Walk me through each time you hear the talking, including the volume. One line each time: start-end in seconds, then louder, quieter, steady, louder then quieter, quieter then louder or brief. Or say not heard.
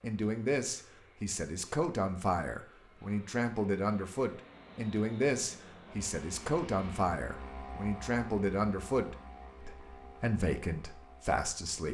0.0-11.8 steady.